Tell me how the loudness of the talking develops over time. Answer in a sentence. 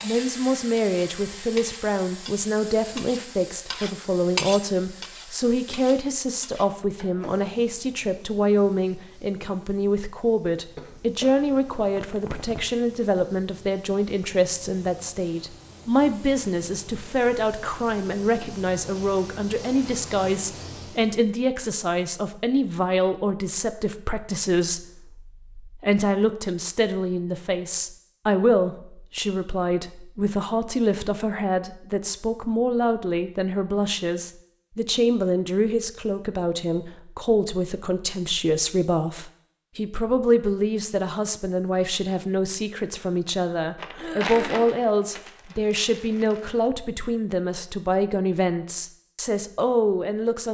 The volume of the talking stays about the same.